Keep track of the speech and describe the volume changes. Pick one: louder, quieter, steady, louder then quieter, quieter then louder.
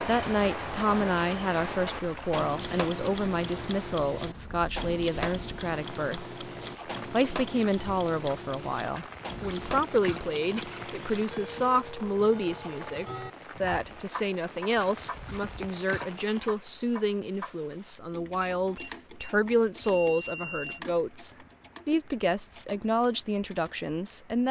steady.